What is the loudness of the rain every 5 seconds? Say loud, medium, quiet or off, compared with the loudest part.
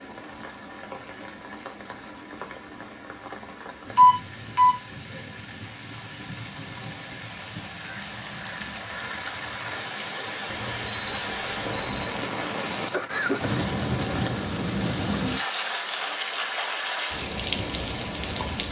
quiet, medium, loud, loud.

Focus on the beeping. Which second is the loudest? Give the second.
4 s.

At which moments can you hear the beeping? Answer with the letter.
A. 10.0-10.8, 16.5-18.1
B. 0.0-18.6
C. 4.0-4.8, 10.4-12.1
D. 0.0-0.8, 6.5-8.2
C.